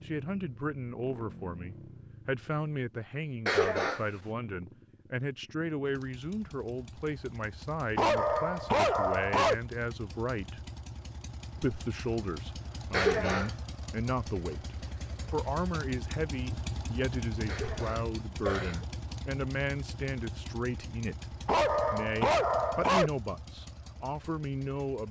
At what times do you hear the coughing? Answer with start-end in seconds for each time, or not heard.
3.5-4.0, 12.9-13.6, 17.4-18.9.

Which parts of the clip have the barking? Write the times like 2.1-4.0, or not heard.
8.0-9.6, 21.4-23.1.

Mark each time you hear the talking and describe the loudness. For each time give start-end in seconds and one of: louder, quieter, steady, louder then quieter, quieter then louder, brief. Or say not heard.
0.0-10.7 steady
11.6-25.0 steady.